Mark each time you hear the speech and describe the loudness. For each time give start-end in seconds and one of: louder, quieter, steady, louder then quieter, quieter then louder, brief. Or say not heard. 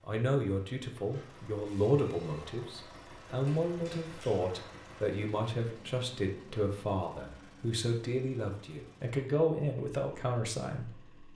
0.1-11.3 steady.